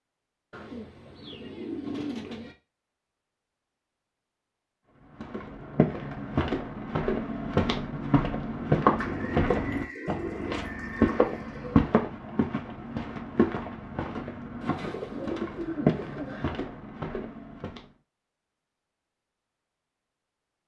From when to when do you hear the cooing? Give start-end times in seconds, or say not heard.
0.5-2.5, 8.9-11.8, 14.6-16.4.